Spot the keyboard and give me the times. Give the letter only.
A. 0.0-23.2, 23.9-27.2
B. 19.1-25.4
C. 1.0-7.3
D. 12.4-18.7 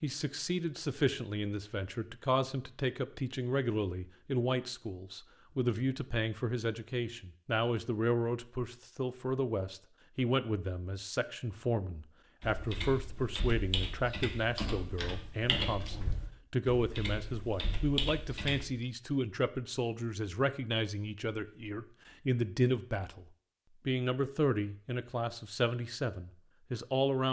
D.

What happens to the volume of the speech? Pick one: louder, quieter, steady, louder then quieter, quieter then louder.
steady.